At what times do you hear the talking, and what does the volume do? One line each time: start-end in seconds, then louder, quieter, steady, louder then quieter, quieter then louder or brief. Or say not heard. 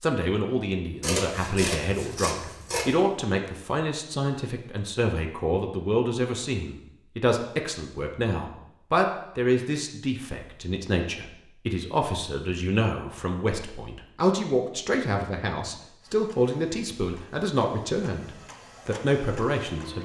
0.0-20.0 steady.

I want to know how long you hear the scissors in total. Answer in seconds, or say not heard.
2 s.